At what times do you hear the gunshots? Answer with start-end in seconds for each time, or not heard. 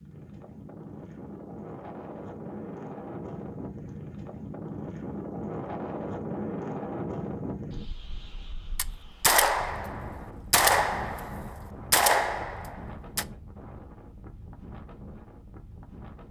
8.8-13.2.